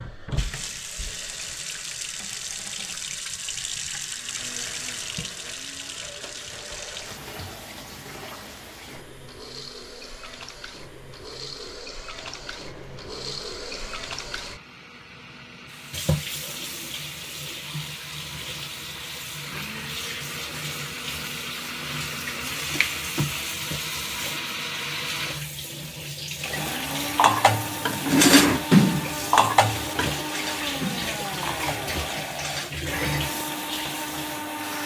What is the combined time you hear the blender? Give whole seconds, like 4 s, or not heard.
31 s.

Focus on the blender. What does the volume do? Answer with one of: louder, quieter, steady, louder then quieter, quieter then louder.
louder.